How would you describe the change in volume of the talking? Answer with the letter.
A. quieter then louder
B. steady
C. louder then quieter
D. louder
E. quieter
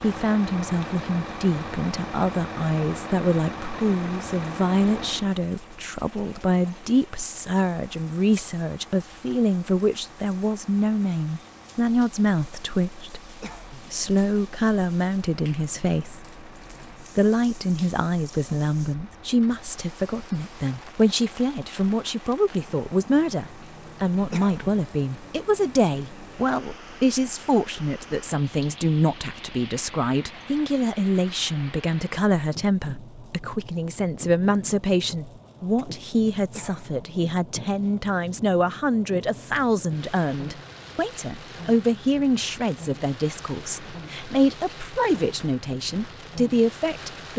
B.